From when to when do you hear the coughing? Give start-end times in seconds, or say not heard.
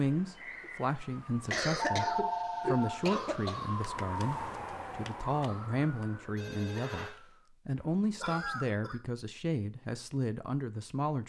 1.5-3.7, 7.8-9.0.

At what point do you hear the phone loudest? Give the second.
2 s.